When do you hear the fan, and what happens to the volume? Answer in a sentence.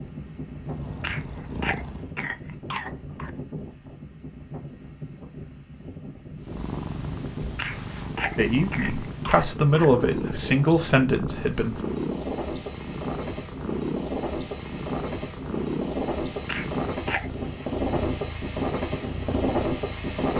The fan can be heard from 0.0 to 20.3 s, getting louder.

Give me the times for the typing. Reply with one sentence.
You can't hear the typing here.